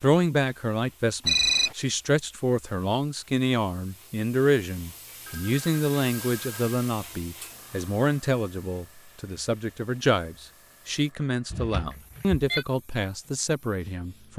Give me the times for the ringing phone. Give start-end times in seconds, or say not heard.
1.2-1.8, 5.2-6.7, 11.5-12.7.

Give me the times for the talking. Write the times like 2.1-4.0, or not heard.
0.0-14.3.